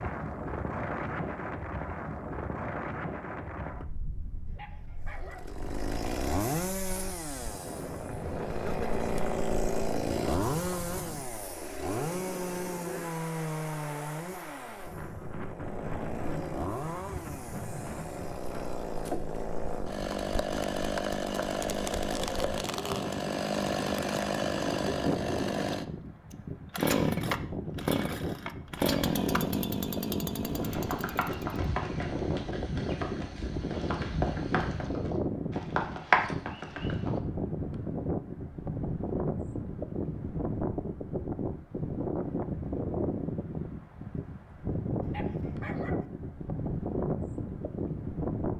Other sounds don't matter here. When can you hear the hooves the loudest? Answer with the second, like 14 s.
36 s.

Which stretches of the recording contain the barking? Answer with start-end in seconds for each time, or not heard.
4.5-5.5, 45.0-46.0.